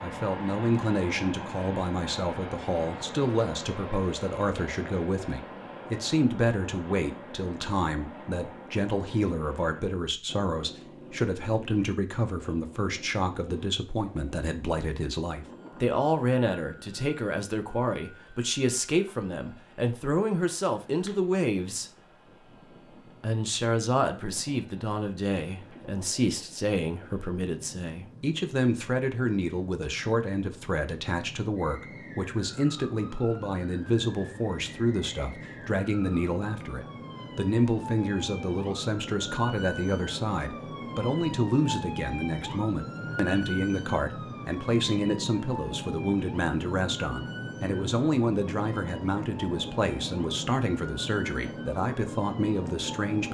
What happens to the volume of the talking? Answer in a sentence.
The volume of the talking stays about the same.